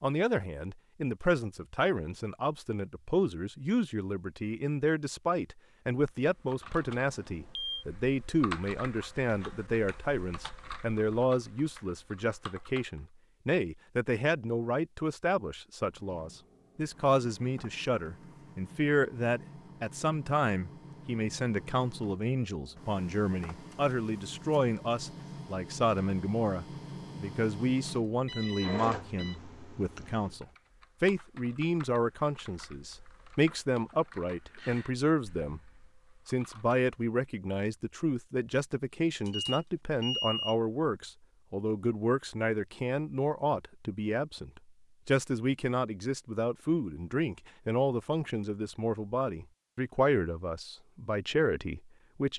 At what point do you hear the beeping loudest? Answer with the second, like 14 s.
40 s.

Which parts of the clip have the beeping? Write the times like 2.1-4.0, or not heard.
6.7-7.8, 28.2-29.4, 39.2-40.5.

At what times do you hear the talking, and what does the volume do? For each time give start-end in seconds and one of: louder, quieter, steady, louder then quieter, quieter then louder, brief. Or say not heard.
0.0-35.6 steady
36.2-52.3 steady.